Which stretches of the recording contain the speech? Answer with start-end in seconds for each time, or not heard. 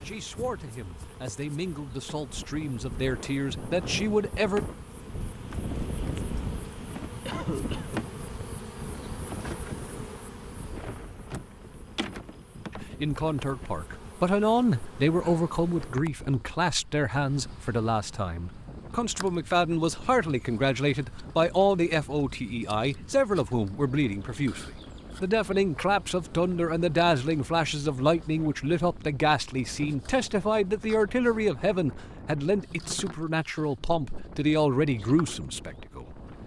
0.0-4.6, 12.8-36.4.